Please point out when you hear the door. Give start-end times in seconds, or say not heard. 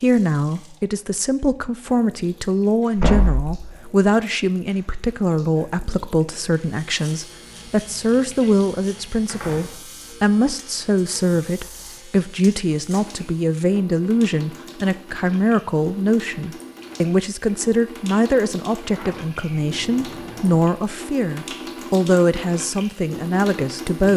3.0-3.5, 9.2-9.8, 18.8-20.6.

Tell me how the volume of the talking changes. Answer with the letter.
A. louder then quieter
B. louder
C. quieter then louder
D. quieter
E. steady
E.